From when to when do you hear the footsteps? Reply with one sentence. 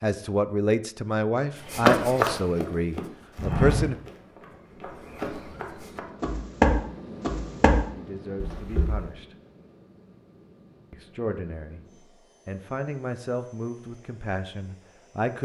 The footsteps can be heard from 1.6 to 9.1 s.